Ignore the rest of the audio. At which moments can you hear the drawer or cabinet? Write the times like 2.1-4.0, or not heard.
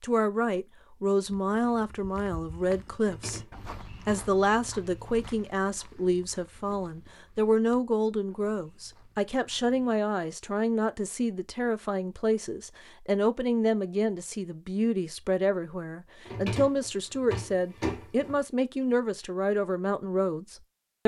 3.0-4.2, 16.2-18.4.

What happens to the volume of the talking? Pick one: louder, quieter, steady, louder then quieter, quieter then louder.
steady.